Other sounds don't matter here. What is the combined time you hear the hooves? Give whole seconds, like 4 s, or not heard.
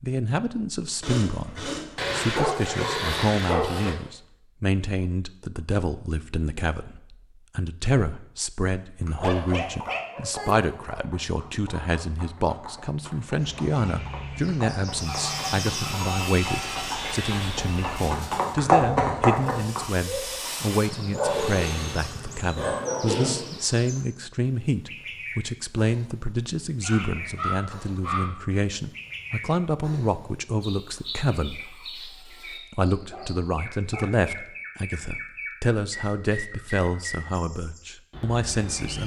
11 s.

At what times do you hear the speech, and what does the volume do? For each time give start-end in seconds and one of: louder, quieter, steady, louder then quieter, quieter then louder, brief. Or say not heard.
0.0-39.0 steady.